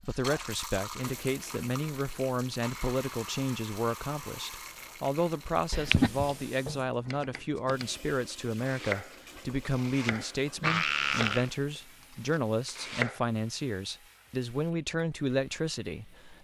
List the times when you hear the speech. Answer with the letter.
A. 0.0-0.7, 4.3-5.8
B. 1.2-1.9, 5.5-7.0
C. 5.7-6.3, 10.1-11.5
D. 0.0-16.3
D.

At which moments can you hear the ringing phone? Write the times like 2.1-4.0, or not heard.
not heard.